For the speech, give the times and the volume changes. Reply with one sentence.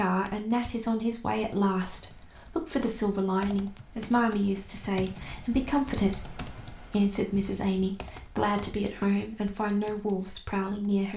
You can hear the speech from 0.0 to 11.1 s, at a steady volume.